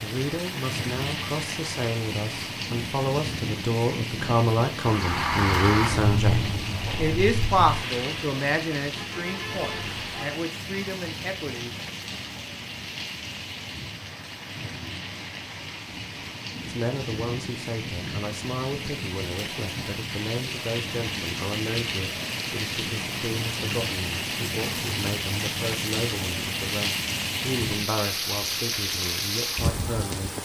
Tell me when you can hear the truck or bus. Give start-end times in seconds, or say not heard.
4.8-10.4.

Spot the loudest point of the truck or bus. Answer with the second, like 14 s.
6 s.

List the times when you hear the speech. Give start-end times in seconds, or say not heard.
0.0-11.7, 16.6-30.3.